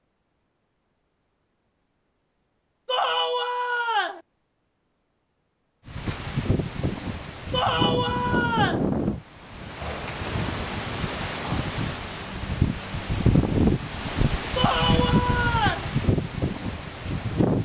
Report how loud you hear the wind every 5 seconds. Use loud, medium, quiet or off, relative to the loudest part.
off, loud, loud, loud.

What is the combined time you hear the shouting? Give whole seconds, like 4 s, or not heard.
4 s.